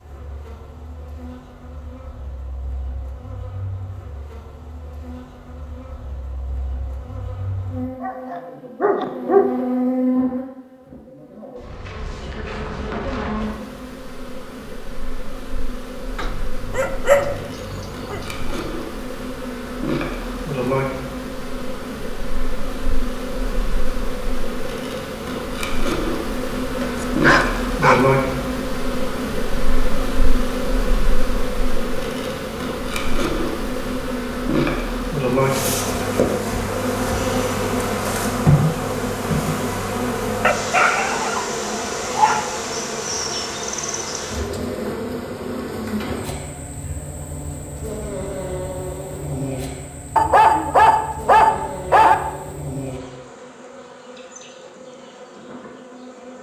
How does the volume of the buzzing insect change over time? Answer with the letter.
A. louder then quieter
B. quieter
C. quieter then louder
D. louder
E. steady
A.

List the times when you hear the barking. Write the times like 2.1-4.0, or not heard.
8.0-9.6, 16.1-18.6, 26.8-28.1, 40.4-42.5, 50.1-52.1.